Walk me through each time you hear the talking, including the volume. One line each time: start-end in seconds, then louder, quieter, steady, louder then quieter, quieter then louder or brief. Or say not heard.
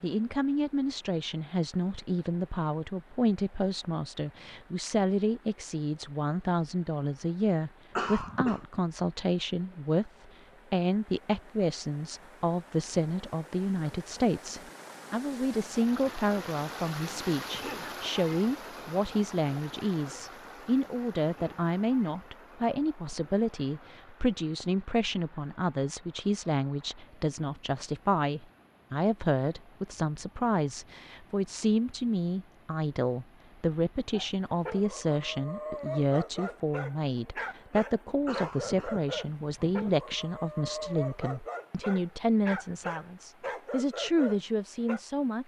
0.0-10.1 steady
10.7-45.4 steady.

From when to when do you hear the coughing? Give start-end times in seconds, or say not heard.
8.0-8.7, 38.2-40.1.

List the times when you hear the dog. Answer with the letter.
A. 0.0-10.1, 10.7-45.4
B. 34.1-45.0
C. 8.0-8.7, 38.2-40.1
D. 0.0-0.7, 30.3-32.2
B.